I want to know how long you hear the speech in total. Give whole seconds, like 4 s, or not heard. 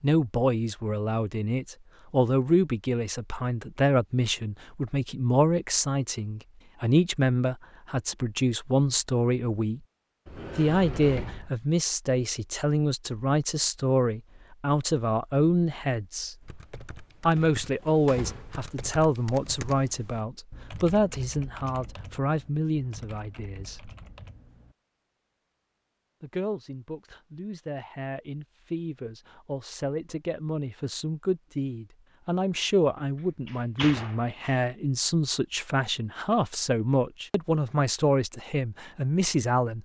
36 s.